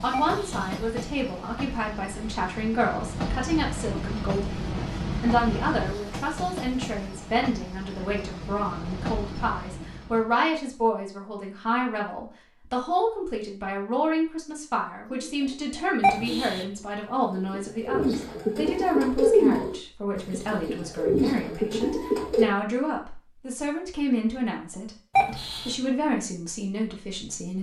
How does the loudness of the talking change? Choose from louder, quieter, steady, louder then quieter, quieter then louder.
steady.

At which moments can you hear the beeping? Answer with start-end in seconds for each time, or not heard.
0.1-0.8, 16.0-16.6, 25.1-25.8.